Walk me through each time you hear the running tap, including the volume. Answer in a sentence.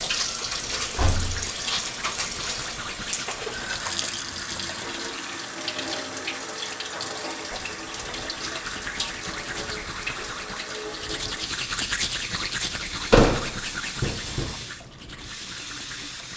You can hear the running tap from 0.0 to 16.3 s, getting quieter.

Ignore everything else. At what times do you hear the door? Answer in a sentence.
You can hear the door from 0.2 to 1.4 s and from 13.1 to 14.5 s.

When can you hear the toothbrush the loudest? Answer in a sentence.
The loudest moment of the toothbrush is at 12 seconds.